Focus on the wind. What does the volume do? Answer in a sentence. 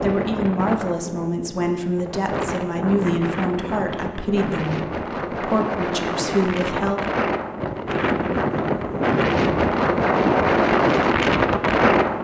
The volume of the wind goes up.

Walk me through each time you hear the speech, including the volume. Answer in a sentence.
The speech can be heard from 0.0 to 7.0 s, at a steady volume.